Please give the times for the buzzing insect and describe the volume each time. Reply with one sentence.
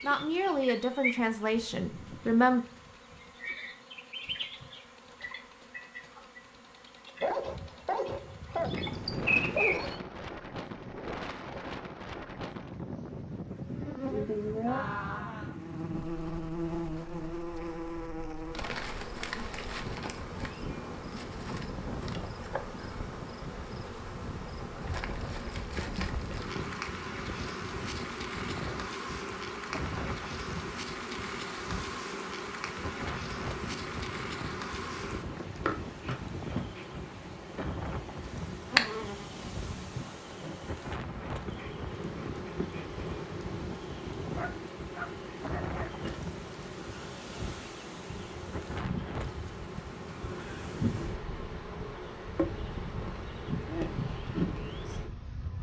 The buzzing insect can be heard from 0.0 to 55.5 s, at a steady volume.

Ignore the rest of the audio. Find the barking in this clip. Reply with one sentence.
You can hear the barking from 7.2 to 9.9 s and from 44.4 to 45.9 s.